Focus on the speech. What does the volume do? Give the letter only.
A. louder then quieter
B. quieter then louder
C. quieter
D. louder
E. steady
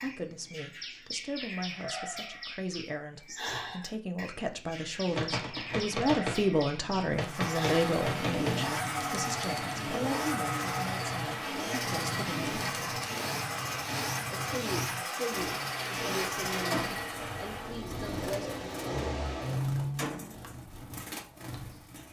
A.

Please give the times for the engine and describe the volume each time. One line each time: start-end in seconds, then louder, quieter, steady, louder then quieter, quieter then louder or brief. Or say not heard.
7.2-20.2 steady.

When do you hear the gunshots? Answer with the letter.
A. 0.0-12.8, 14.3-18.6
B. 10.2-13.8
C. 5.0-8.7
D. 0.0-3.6
C.